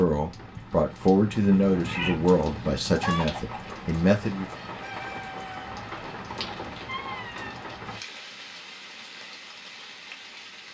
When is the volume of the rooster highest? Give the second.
3 s.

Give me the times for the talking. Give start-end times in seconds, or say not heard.
0.0-4.5.